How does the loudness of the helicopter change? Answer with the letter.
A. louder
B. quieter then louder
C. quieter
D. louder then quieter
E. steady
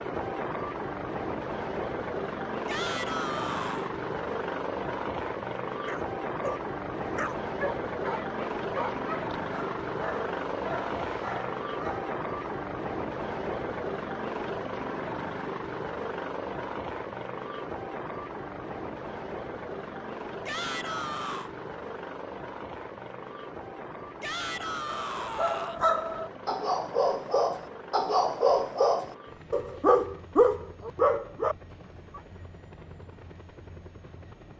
C.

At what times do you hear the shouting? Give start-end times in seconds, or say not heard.
2.6-3.9, 20.4-21.5, 24.2-25.9.